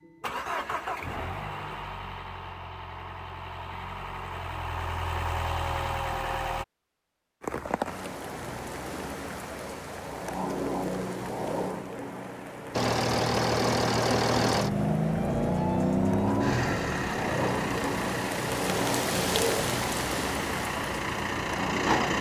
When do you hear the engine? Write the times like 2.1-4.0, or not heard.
0.0-6.7, 12.7-22.1.